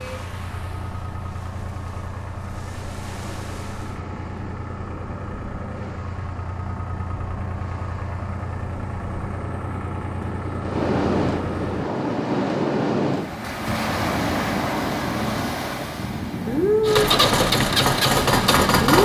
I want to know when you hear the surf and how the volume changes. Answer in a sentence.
You can hear the surf from 0.0 to 19.0 s, getting louder.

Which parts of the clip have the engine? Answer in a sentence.
You can hear the engine from 0.0 to 12.2 s and from 16.8 to 19.0 s.